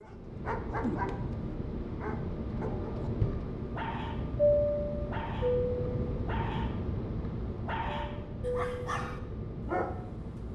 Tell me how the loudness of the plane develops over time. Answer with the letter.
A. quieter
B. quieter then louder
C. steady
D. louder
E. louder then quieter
E.